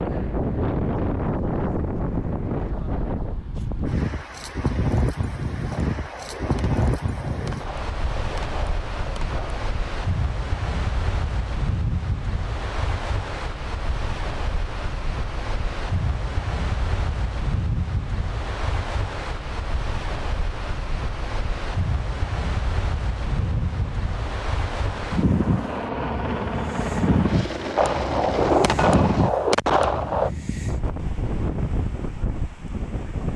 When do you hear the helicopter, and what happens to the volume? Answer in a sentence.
You can hear the helicopter from 23.3 to 29.3 s, getting louder.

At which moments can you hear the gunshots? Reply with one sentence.
The gunshots can be heard from 5.7 to 9.7 s and from 27.8 to 30.3 s.